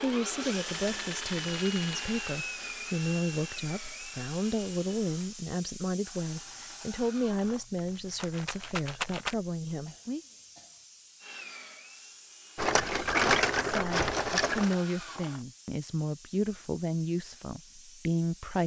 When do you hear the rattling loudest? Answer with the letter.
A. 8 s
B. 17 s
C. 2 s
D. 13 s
D.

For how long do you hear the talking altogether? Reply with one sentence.
The talking can be heard for 15 seconds in total.